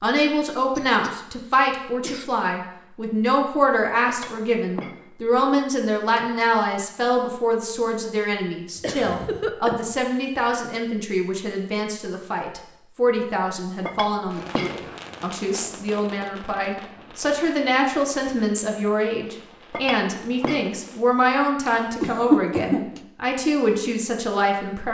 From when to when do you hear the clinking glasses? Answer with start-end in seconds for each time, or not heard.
4.0-5.1, 13.8-14.8, 19.7-20.8.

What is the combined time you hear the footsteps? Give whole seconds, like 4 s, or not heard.
not heard.